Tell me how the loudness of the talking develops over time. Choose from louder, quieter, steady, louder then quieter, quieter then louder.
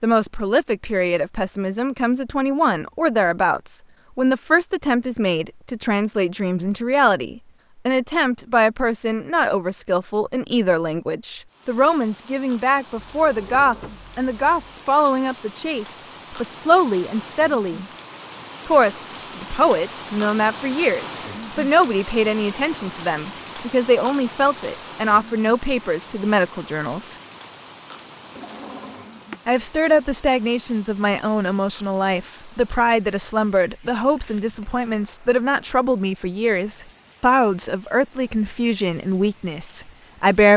steady.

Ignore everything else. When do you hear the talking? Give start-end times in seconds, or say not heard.
0.0-17.9, 18.6-27.1, 29.4-40.5.